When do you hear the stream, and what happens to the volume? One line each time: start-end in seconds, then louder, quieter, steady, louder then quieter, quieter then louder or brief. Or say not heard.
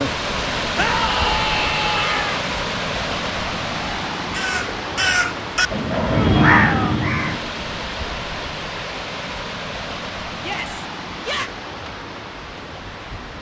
0.0-13.3 quieter.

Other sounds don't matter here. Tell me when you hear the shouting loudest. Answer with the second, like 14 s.
1 s.